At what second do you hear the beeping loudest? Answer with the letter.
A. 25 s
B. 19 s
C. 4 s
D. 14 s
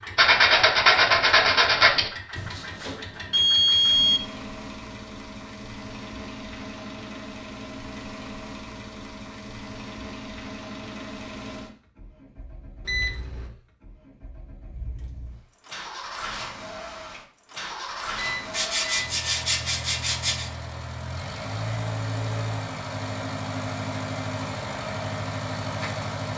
C.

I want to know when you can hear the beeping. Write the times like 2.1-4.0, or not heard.
2.4-4.2, 12.8-13.4, 18.1-19.2.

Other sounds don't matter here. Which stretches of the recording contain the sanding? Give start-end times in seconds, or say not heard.
0.1-2.1, 18.5-20.5.